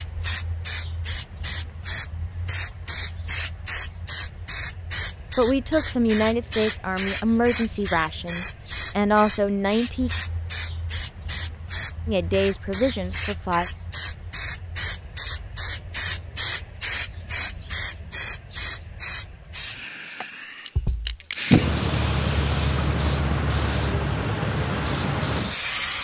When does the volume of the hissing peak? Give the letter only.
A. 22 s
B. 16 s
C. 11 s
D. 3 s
A.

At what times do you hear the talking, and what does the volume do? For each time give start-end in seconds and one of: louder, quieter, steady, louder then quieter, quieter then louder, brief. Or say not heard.
5.3-10.1 quieter then louder
12.1-13.7 brief.